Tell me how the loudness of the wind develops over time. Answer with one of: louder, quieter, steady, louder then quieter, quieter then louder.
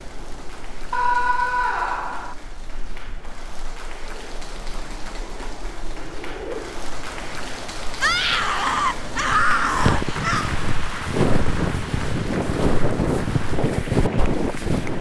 louder.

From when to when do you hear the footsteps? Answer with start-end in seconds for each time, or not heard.
9.2-14.9.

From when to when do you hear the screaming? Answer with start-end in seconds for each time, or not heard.
0.9-2.4, 8.0-10.5.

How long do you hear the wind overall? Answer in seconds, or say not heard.
15 s.